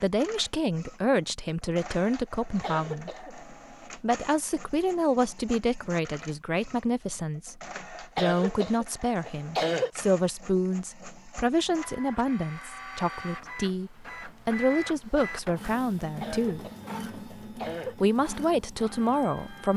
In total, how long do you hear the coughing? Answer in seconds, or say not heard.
5 s.